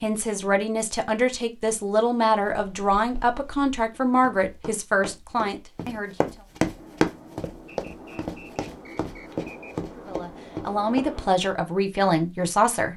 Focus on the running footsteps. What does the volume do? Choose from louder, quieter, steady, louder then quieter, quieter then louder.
louder then quieter.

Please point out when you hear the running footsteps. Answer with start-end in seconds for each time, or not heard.
2.4-11.1.